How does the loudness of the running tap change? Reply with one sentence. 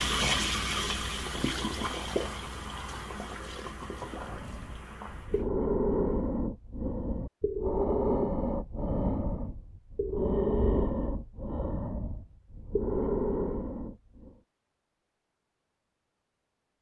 The loudness of the running tap goes down.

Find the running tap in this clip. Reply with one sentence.
You can hear the running tap from 0.0 to 5.5 s.